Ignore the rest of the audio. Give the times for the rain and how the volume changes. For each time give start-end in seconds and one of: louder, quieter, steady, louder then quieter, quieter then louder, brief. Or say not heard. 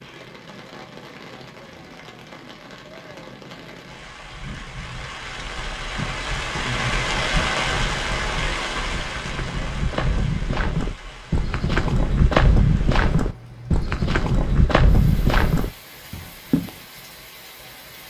0.0-18.0 louder then quieter.